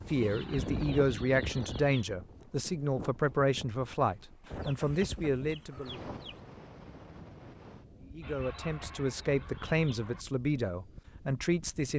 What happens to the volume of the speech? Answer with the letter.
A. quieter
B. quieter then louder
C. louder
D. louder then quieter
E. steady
E.